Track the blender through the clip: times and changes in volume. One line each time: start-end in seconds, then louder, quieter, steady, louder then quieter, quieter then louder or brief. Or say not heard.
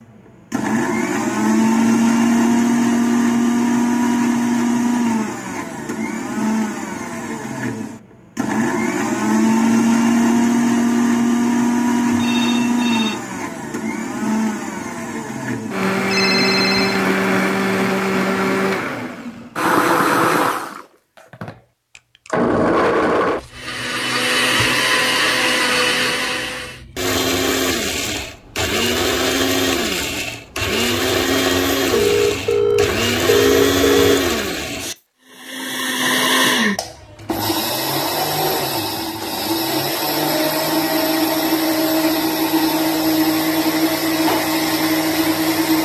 0.5-45.8 steady.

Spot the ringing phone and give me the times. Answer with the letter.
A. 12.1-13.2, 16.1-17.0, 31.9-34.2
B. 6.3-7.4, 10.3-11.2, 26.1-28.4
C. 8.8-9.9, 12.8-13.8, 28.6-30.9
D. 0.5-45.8
A.